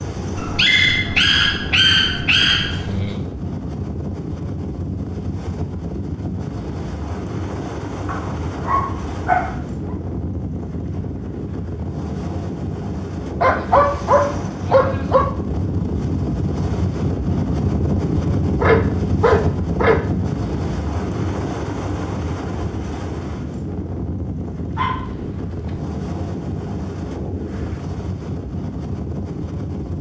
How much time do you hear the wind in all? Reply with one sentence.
The wind can be heard for 30 seconds in total.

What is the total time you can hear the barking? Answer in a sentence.
The barking can be heard for 9 seconds in total.